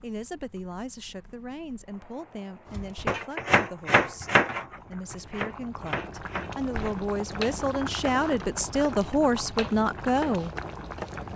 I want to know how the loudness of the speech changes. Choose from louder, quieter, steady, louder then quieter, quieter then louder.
louder.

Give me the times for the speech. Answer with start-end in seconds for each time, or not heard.
0.0-10.5.